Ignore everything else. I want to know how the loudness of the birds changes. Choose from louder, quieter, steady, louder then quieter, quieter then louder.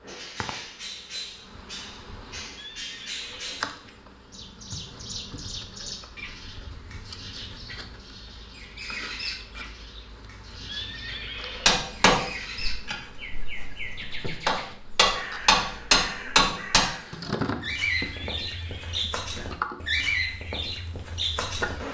louder.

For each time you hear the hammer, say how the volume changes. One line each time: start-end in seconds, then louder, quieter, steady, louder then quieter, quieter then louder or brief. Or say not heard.
11.7-16.9 quieter then louder.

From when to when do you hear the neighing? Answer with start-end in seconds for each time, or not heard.
2.5-3.7, 10.7-11.8, 18.4-19.1.